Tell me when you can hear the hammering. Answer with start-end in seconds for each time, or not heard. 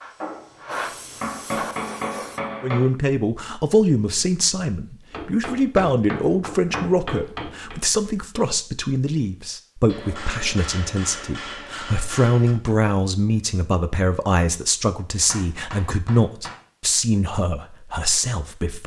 0.2-2.9, 5.1-7.8, 9.8-12.6, 15.3-16.6.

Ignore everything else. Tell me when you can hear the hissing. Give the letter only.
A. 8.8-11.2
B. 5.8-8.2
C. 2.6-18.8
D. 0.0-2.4
D.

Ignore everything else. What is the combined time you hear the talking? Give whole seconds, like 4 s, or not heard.
16 s.